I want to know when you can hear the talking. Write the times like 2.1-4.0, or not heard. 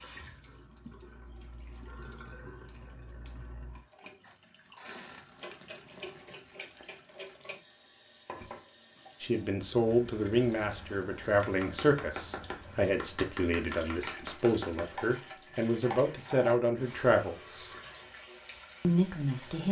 9.2-17.7, 18.8-19.6.